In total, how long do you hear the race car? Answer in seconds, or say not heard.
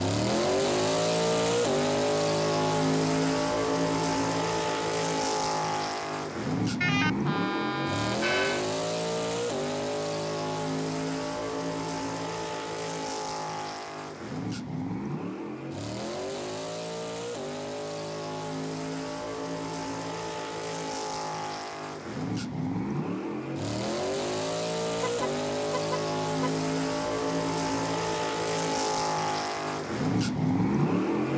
31 s.